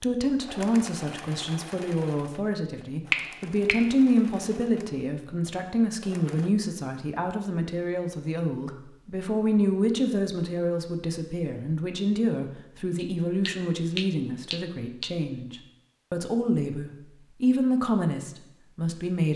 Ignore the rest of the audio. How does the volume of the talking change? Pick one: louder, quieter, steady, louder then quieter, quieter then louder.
steady.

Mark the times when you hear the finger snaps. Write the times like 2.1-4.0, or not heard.
3.1-4.0, 12.9-15.1.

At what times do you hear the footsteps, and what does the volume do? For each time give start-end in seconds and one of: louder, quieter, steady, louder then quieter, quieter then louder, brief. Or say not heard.
not heard.